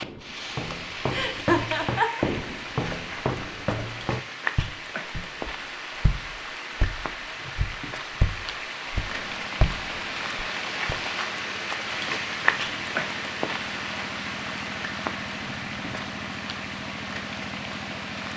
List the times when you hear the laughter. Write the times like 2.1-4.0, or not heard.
1.1-2.2.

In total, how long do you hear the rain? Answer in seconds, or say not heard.
18 s.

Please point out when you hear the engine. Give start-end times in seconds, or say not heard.
8.9-18.3.